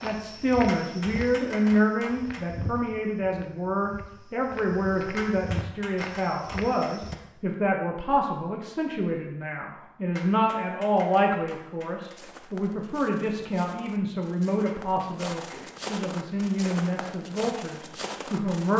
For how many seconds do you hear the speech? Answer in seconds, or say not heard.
19 s.